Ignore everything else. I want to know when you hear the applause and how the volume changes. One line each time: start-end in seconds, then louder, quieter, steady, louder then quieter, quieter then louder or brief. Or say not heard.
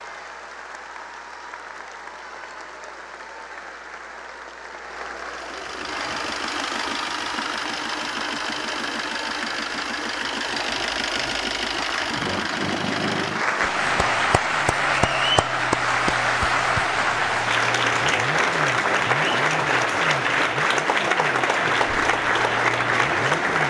0.0-23.6 louder.